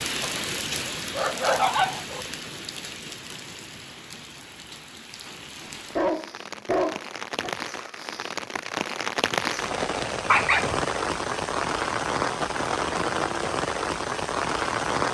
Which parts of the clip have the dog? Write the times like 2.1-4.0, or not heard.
0.2-2.2, 5.6-7.5, 10.2-10.8.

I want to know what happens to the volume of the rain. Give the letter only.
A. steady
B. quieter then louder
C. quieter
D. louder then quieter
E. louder
B.